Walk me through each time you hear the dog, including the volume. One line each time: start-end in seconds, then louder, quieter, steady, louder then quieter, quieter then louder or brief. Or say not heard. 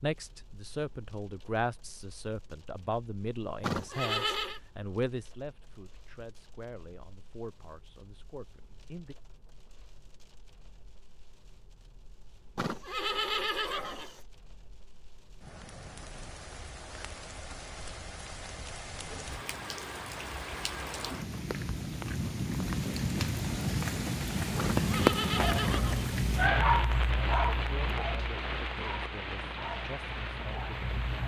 25.3-31.2 quieter.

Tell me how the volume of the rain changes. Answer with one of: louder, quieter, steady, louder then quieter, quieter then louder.
louder.